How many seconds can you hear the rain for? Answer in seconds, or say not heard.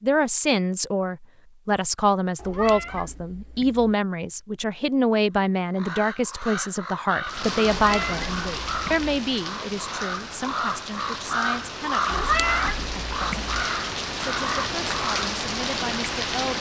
9 s.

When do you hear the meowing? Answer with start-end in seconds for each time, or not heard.
2.4-4.0, 7.7-9.1, 12.1-13.6.